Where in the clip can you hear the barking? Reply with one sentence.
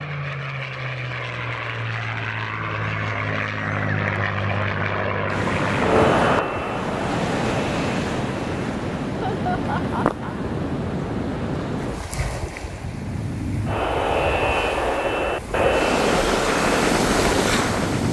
The barking can't be heard in this clip.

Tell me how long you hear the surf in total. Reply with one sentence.
You can hear the surf for 13 seconds altogether.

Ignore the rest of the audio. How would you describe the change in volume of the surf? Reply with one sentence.
The loudness of the surf goes down, then up.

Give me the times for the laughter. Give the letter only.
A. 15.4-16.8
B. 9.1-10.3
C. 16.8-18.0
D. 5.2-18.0
B.